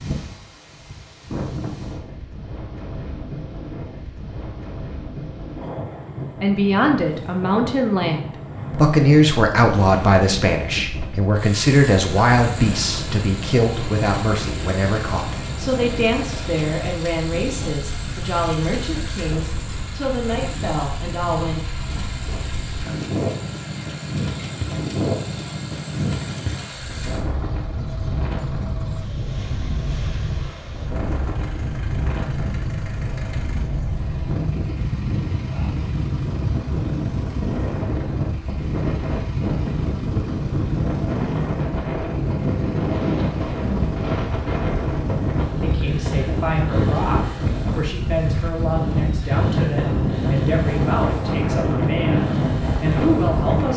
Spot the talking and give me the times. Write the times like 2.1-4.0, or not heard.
6.4-21.6, 45.6-53.7.